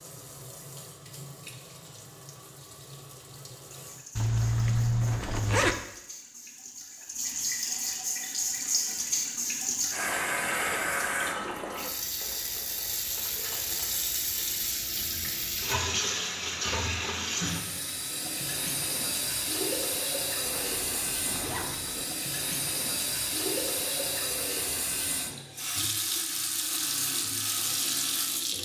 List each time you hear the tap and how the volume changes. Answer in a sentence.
The tap can be heard from 0.0 to 28.6 s, getting louder.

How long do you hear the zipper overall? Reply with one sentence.
You can hear the zipper for 3 seconds altogether.